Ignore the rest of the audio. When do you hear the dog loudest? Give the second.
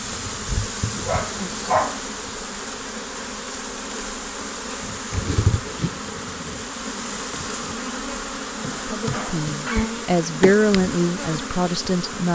2 s.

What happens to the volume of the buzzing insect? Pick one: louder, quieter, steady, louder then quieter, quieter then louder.
steady.